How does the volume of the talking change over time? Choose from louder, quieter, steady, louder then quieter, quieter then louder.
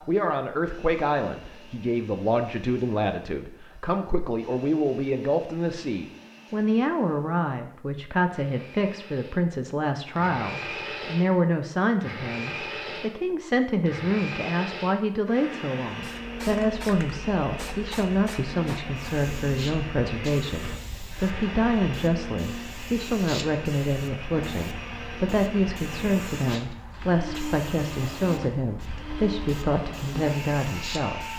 steady.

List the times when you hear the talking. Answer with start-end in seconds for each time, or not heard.
0.1-31.3.